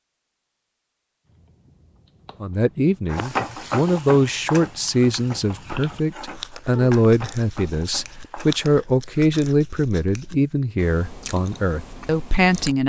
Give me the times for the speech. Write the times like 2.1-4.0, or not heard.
2.4-12.8.